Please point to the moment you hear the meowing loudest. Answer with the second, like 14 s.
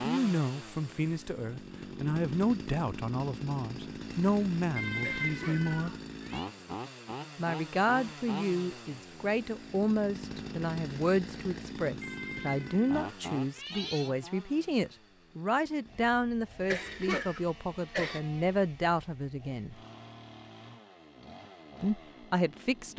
5 s.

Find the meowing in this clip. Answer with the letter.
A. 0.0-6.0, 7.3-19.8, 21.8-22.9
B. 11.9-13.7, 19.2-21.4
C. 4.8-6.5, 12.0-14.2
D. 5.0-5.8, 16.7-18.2
C.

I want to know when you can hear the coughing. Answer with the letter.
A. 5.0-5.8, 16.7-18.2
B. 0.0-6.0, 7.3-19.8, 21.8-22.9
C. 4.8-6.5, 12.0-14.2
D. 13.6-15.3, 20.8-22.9
A.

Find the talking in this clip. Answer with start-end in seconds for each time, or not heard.
0.0-6.0, 7.3-19.8, 21.8-22.9.